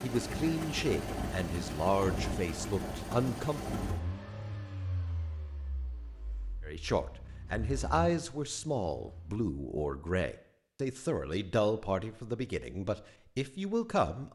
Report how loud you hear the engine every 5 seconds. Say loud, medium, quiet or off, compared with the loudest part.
loud, quiet, off.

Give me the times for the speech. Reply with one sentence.
The speech can be heard from 0.0 to 3.6 s and from 6.7 to 14.3 s.